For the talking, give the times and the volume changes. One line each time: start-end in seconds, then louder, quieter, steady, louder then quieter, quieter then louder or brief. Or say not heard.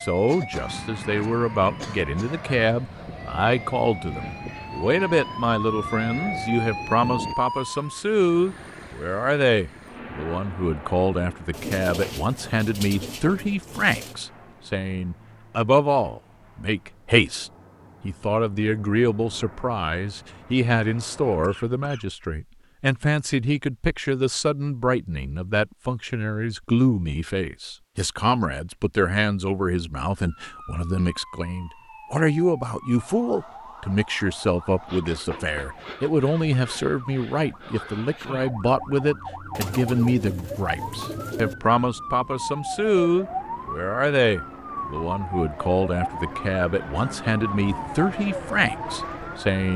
0.0-49.7 steady.